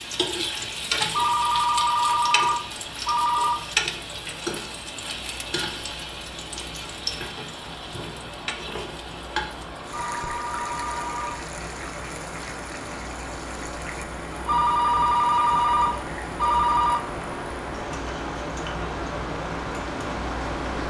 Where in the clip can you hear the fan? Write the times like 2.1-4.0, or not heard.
0.0-20.8.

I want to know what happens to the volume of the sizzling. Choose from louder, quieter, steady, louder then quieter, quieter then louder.
quieter.